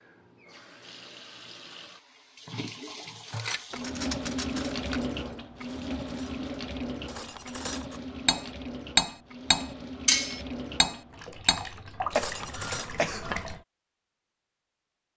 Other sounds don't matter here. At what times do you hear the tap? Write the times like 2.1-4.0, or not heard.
0.0-13.7.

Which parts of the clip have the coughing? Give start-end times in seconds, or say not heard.
12.1-13.4.